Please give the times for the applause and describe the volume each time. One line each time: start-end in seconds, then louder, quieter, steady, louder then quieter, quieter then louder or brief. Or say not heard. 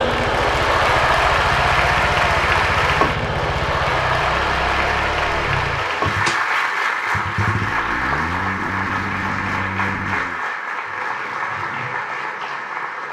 0.0-13.0 quieter.